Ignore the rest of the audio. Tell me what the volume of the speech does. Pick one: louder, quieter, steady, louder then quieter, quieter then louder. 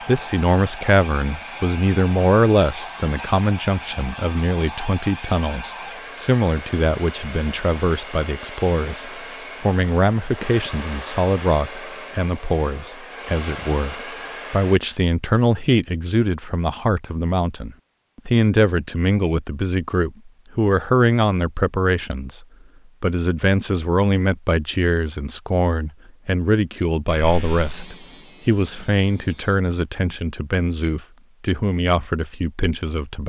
steady.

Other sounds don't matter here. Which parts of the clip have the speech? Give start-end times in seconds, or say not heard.
0.1-33.2.